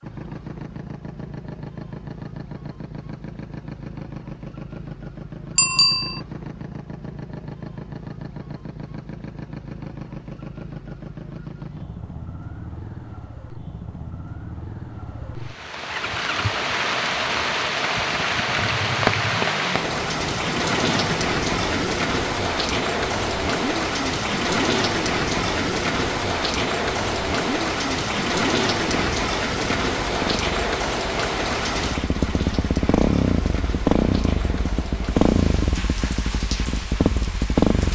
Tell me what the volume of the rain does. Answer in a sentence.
The volume of the rain goes down.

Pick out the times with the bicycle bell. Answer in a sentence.
The bicycle bell can be heard from 5.5 to 6.2 s.